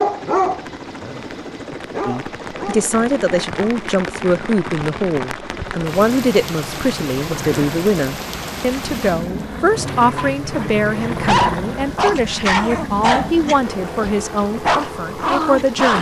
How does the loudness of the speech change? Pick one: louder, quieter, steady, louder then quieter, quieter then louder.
steady.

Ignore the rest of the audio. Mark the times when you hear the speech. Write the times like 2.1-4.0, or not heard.
2.0-15.9.